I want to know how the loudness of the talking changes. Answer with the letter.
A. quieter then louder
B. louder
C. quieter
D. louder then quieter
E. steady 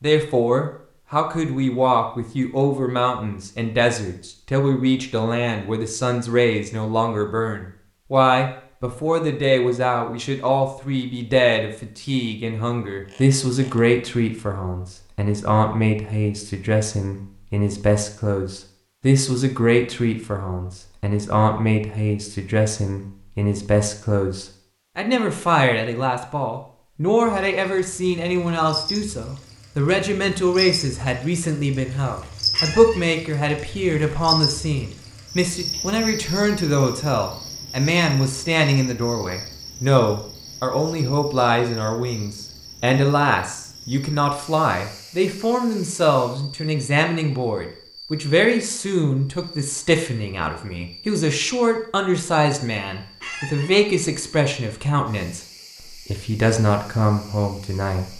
E.